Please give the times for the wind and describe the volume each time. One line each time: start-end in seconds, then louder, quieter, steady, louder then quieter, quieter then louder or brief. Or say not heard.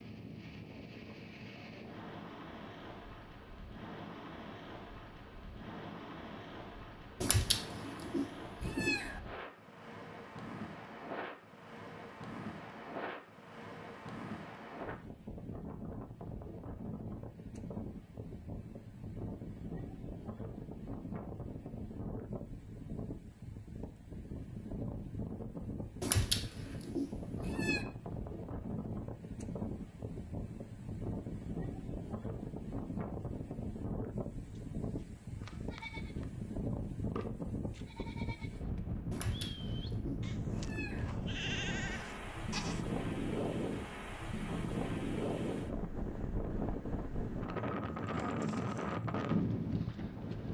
0.0-50.4 louder.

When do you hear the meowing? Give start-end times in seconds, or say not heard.
7.2-9.2, 26.0-27.8, 39.1-41.1.